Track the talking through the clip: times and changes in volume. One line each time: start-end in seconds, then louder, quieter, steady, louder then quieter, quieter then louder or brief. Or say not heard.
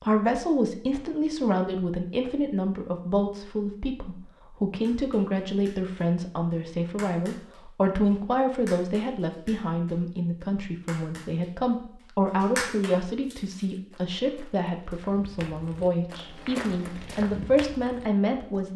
0.0-18.7 steady.